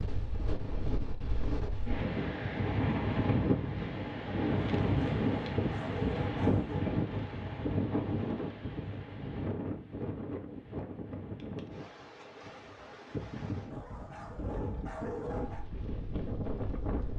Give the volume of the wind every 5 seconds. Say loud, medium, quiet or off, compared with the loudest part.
loud, loud, medium, medium.